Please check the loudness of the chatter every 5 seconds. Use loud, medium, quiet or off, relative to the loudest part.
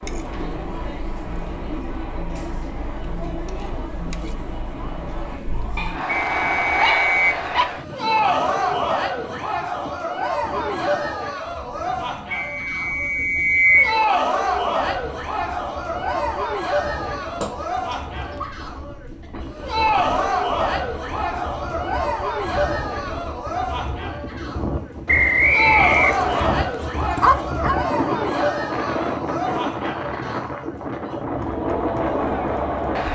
medium, loud, loud, loud, loud, loud, loud.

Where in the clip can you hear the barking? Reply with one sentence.
The barking can be heard from 5.8 to 7.7 s, from 17.4 to 18.6 s and from 26.7 to 27.8 s.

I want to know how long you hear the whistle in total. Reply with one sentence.
The whistle can be heard for 4 seconds in total.